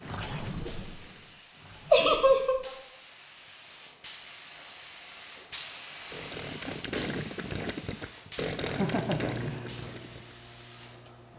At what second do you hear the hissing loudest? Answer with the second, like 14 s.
6 s.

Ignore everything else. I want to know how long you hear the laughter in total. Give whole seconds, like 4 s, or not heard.
2 s.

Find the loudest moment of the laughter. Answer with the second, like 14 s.
2 s.